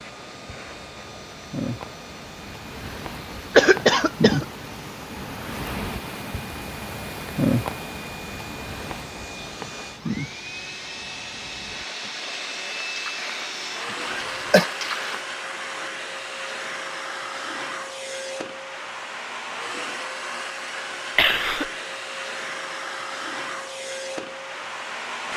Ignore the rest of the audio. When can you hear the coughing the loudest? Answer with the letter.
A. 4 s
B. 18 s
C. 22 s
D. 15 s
A.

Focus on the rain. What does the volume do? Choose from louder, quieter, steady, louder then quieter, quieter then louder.
louder then quieter.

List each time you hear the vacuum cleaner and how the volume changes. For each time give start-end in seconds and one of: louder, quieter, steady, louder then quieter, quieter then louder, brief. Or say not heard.
0.0-25.3 louder.